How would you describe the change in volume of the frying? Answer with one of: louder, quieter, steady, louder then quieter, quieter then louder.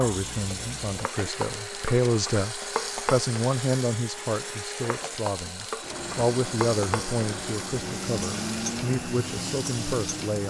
steady.